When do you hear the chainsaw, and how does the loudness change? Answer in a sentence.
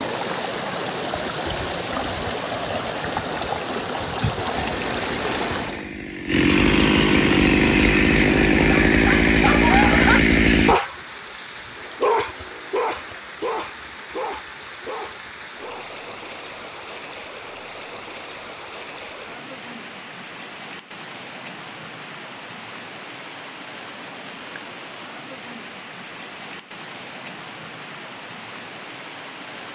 You can hear the chainsaw from 4.5 to 10.8 s, getting louder.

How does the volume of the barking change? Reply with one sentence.
The loudness of the barking goes down.